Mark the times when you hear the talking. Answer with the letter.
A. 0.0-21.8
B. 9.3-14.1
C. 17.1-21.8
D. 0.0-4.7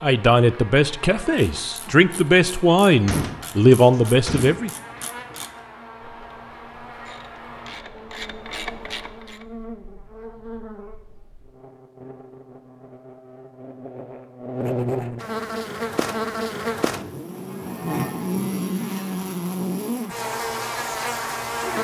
D.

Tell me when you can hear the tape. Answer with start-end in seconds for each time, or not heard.
not heard.